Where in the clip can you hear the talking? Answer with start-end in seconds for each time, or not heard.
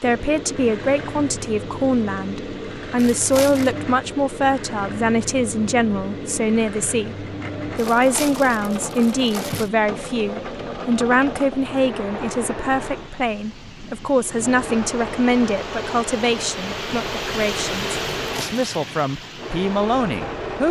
0.0-20.6.